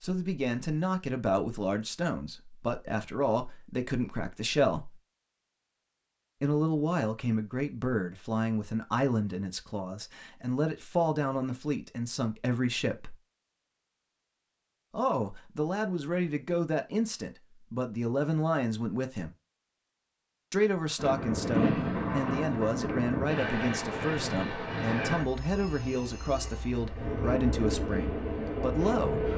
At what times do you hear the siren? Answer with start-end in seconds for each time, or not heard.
not heard.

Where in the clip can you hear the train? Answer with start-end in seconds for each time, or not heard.
20.9-29.3.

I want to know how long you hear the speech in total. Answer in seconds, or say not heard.
25 s.